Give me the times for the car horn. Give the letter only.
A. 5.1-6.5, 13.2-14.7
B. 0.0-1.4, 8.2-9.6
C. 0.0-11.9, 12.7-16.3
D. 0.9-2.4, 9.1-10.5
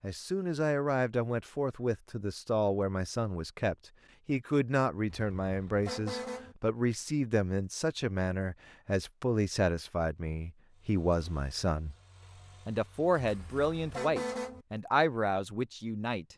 A.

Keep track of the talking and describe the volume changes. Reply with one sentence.
The volume of the talking stays about the same.